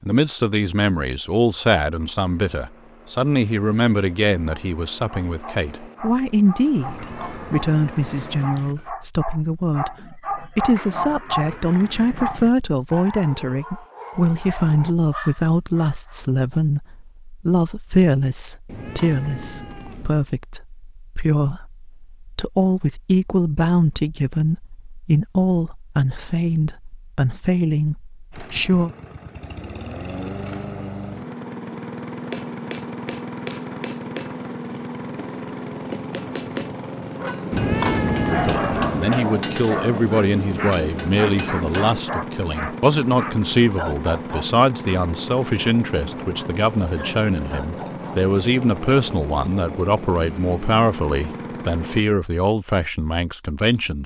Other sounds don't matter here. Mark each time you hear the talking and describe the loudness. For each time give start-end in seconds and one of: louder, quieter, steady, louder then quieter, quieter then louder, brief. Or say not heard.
0.0-28.9 steady
38.2-54.0 steady.